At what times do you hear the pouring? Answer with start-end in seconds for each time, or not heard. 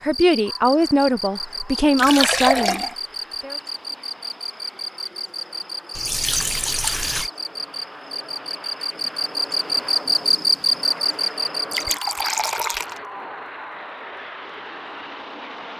1.9-3.0, 6.0-7.3, 11.7-13.0.